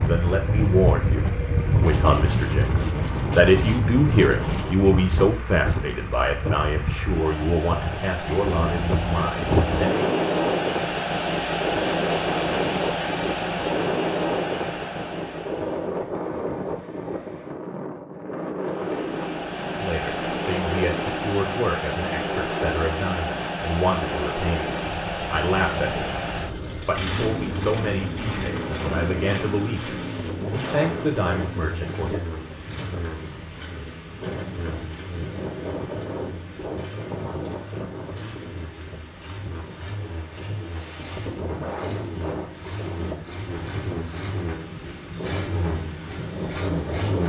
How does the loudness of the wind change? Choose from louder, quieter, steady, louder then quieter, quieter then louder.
quieter.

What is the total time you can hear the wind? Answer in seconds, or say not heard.
47 s.